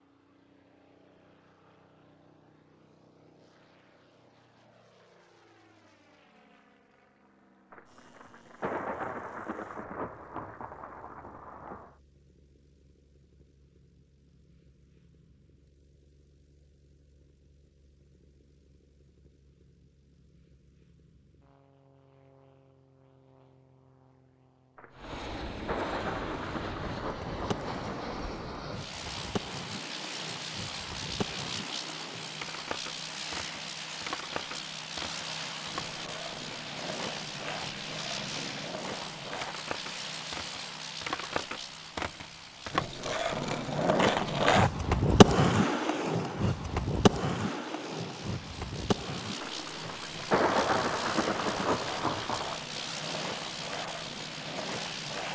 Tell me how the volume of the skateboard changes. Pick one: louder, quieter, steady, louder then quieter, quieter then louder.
louder then quieter.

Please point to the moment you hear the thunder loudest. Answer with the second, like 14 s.
50 s.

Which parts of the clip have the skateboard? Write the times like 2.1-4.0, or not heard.
25.9-55.2.